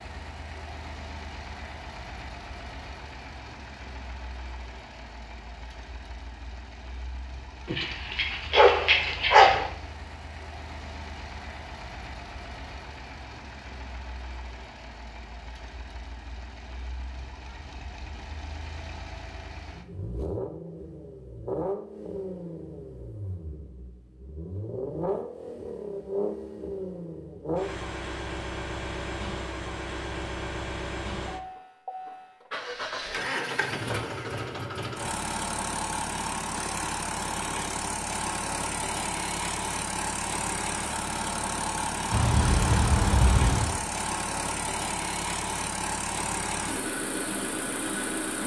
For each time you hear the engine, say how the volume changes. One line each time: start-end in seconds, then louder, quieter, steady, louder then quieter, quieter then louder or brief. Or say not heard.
0.0-48.4 louder.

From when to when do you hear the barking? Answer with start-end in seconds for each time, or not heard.
7.7-9.7, 42.1-43.8.